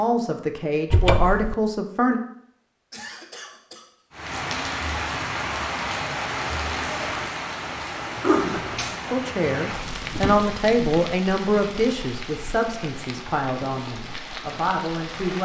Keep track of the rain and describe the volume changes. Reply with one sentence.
The volume of the rain goes down.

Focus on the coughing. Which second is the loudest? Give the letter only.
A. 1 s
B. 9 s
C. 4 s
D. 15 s
B.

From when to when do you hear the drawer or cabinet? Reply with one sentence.
The drawer or cabinet can be heard from 0.9 to 1.6 s and from 10.1 to 10.5 s.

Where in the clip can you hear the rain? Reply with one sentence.
You can hear the rain from 4.1 to 15.3 s.